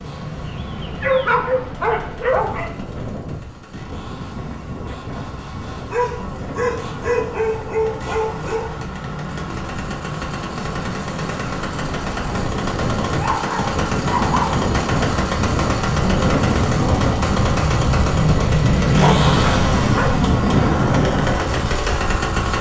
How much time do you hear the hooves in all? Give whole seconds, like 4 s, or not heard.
not heard.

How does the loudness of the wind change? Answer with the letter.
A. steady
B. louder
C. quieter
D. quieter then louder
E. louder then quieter
B.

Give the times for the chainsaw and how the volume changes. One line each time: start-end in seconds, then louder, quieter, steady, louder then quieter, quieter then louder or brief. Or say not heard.
0.0-22.5 louder.